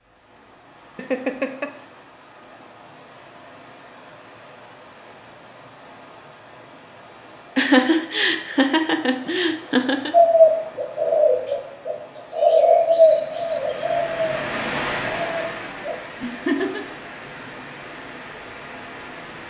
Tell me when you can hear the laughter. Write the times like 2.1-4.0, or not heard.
0.9-1.7, 7.5-10.1, 16.2-16.9.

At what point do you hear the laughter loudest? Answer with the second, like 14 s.
8 s.